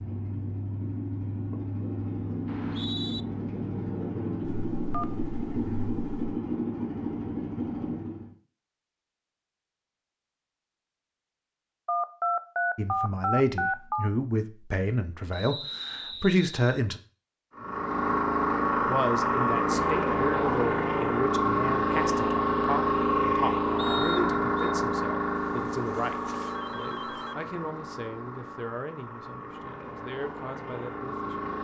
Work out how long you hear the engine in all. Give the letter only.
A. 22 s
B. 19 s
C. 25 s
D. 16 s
A.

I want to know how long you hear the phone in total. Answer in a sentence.
You can hear the phone for 6 seconds altogether.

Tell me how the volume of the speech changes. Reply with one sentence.
The loudness of the speech goes down.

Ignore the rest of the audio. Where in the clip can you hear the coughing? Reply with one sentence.
You can't hear the coughing here.